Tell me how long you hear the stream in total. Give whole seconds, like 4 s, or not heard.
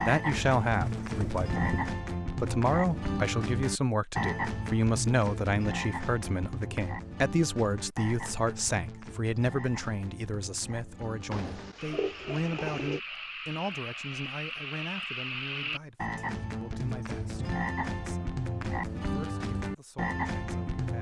not heard.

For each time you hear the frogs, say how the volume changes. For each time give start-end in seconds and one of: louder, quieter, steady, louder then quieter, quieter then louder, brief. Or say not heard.
0.0-20.9 quieter then louder.